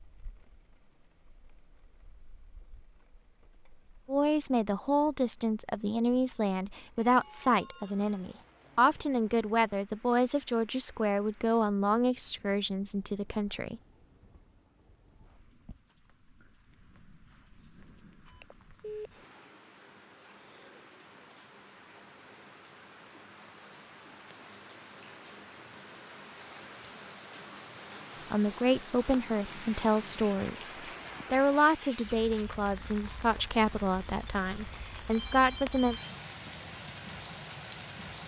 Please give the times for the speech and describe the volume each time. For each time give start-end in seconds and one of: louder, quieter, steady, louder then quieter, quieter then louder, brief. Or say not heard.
4.0-13.8 steady
28.3-36.0 steady.